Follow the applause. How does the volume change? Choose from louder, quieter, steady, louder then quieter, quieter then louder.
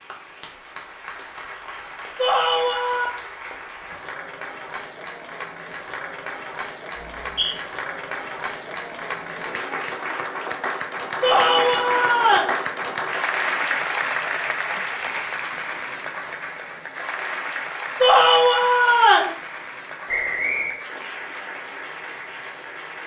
louder then quieter.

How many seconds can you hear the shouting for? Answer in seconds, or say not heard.
4 s.